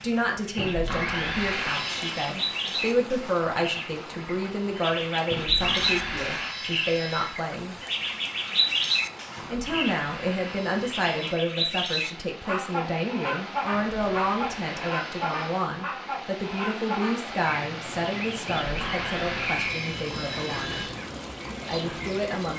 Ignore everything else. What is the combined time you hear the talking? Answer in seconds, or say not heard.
20 s.